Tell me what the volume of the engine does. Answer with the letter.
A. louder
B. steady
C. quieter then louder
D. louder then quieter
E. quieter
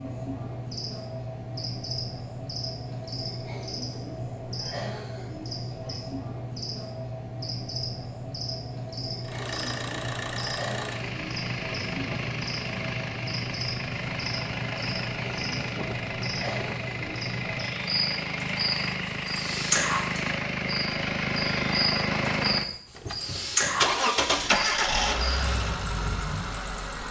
A.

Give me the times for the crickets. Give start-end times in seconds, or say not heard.
0.0-27.0.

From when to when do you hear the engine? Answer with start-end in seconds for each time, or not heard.
9.2-27.0.